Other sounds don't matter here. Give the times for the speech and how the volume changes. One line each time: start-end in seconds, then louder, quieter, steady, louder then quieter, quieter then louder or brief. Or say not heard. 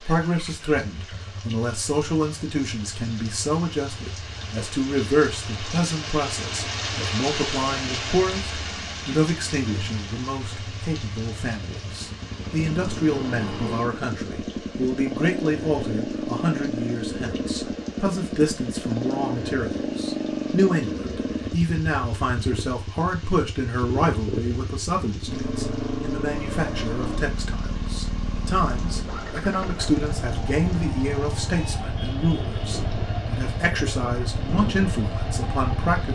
0.0-36.0 steady.